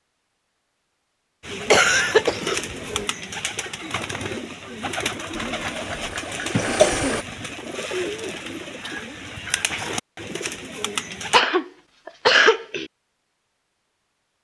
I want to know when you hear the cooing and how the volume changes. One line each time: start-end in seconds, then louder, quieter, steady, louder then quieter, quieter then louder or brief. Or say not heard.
1.4-11.4 steady.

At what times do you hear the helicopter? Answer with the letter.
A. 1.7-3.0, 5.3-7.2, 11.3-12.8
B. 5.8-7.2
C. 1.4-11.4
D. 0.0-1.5
B.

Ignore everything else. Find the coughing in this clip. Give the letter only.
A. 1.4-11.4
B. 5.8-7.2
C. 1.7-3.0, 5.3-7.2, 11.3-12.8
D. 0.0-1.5
C.